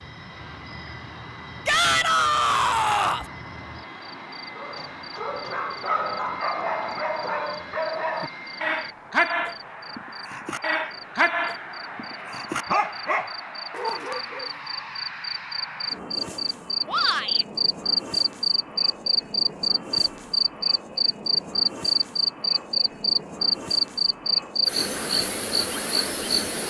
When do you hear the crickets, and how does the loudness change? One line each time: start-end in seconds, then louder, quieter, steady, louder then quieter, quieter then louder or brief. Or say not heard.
0.0-26.6 louder.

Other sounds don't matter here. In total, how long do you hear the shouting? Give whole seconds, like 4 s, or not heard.
2 s.